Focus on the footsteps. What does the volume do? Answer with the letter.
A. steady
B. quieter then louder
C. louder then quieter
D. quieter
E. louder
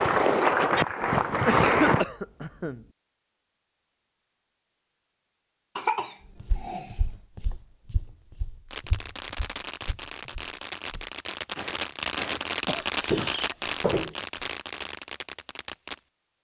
B.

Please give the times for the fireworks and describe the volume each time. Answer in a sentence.
You can hear the fireworks from 8.7 to 16.0 s, getting louder then quieter.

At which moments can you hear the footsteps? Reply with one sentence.
You can hear the footsteps from 6.4 to 14.2 s.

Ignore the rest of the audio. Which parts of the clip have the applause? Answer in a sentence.
The applause can be heard from 0.0 to 2.0 s.